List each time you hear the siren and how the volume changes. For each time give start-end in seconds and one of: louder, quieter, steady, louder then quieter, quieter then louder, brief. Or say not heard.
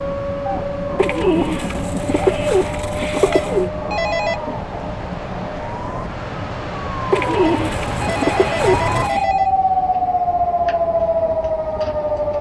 0.0-12.3 louder.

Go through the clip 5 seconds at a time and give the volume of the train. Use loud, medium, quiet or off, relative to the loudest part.
loud, medium, medium.